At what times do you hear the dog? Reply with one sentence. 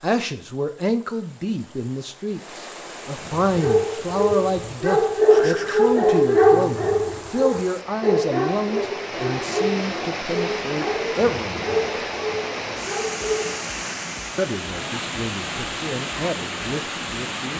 You can hear the dog from 3.2 to 13.7 s.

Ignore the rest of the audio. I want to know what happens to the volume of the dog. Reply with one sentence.
The loudness of the dog goes down.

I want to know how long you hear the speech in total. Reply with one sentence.
The speech can be heard for 15 seconds in total.